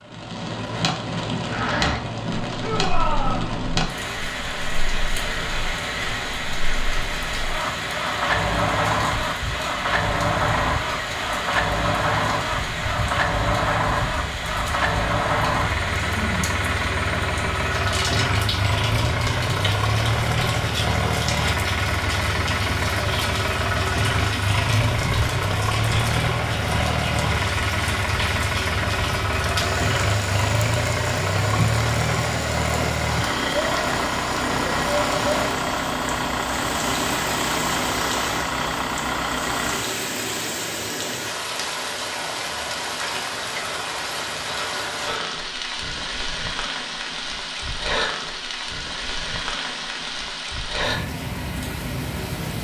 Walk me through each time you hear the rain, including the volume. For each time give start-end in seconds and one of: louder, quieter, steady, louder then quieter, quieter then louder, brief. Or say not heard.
0.0-52.6 steady.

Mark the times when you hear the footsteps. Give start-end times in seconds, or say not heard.
not heard.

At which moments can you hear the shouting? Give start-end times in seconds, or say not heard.
2.5-3.5.